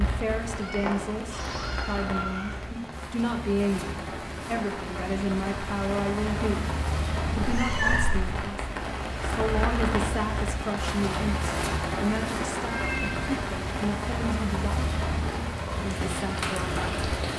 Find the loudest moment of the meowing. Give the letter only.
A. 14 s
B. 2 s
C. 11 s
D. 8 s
D.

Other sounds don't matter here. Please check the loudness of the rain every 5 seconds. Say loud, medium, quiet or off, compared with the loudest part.
medium, loud, loud, loud.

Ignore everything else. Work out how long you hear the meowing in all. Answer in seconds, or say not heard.
4 s.